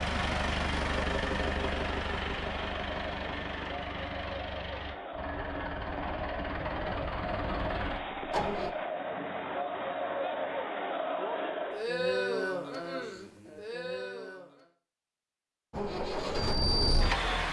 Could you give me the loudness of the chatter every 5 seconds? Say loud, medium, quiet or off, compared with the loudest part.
medium, loud, loud, off.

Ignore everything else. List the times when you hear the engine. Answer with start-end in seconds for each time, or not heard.
0.0-8.8, 15.7-17.4.